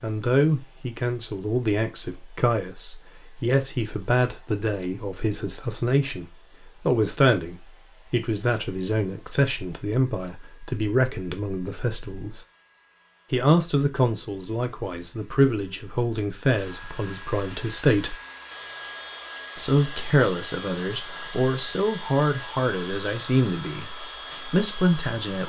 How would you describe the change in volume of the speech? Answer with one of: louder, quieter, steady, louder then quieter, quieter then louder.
steady.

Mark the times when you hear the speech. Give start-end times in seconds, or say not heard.
0.0-6.2, 6.8-12.4, 13.3-18.1, 19.6-25.4.